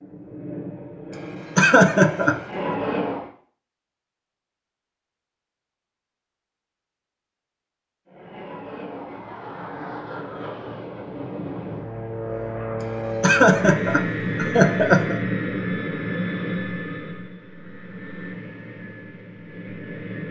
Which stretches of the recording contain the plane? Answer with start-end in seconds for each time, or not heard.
0.0-3.3, 8.1-20.2.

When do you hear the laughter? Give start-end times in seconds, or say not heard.
1.1-2.4, 12.8-15.2.